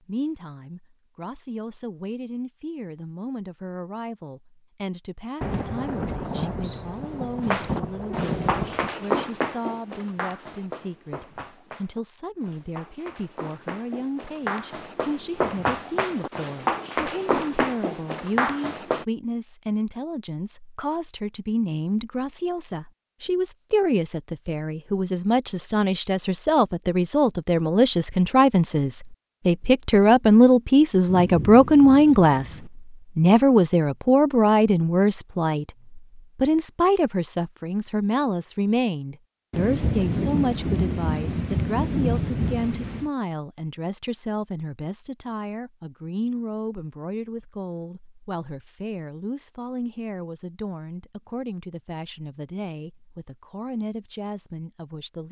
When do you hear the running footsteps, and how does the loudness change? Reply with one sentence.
The running footsteps can be heard from 7.4 to 19.1 s, getting quieter then louder.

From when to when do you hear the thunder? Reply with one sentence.
You can hear the thunder from 5.4 to 8.9 s, from 31.1 to 32.7 s and from 39.5 to 43.1 s.